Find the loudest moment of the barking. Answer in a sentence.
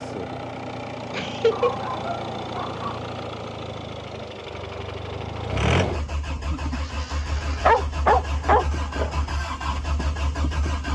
The loudest moment of the barking is at 8 seconds.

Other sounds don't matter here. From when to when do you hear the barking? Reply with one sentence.
The barking can be heard from 1.5 to 3.0 s and from 7.3 to 9.2 s.